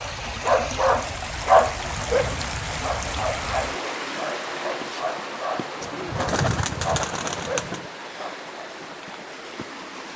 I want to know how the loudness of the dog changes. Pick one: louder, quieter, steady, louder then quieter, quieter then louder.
quieter.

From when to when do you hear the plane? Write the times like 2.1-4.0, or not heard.
not heard.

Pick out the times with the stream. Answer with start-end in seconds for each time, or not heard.
0.0-10.1.